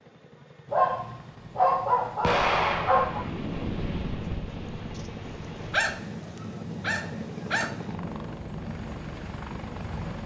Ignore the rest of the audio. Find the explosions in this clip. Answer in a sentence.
The explosions can be heard from 2.2 to 3.3 s.